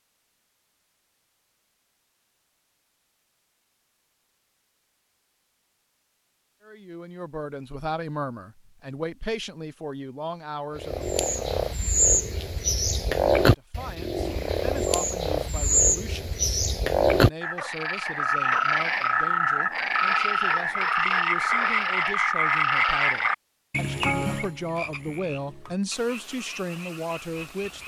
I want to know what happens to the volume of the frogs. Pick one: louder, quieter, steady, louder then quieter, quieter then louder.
quieter.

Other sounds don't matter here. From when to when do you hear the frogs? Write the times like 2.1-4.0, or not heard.
10.8-27.8.